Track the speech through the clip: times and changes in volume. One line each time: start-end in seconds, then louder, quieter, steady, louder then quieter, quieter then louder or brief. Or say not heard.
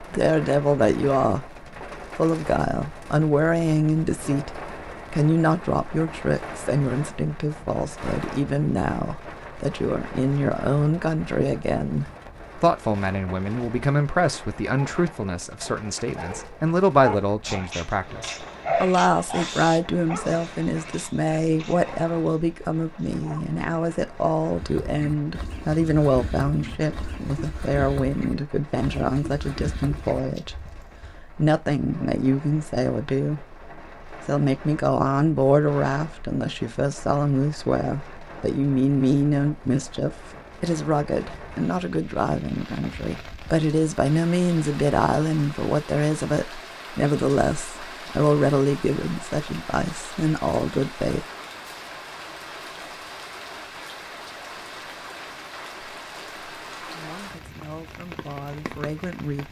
0.0-1.5 brief
2.1-51.2 steady
56.9-59.4 brief.